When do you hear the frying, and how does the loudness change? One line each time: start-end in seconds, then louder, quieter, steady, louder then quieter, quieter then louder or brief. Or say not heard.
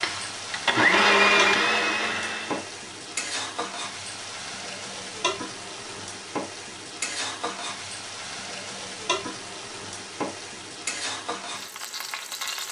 0.0-12.6 steady.